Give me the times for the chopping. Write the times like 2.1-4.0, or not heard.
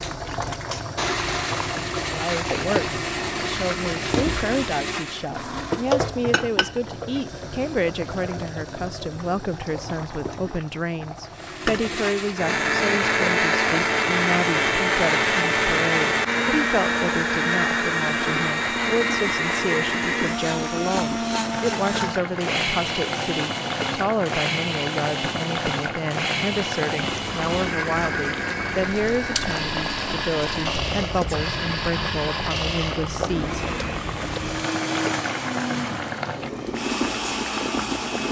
not heard.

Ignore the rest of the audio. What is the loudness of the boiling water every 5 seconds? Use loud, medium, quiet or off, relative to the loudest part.
loud, loud, medium, medium, loud, loud, loud, loud.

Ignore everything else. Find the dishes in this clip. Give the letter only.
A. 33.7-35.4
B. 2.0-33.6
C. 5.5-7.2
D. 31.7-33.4
C.